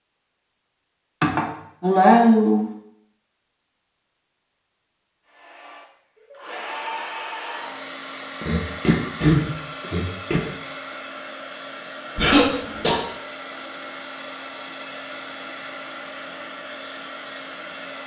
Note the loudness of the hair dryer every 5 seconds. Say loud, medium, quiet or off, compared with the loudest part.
off, loud, loud, loud.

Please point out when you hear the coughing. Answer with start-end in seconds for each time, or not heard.
1.2-2.6, 8.4-10.4, 12.2-13.0.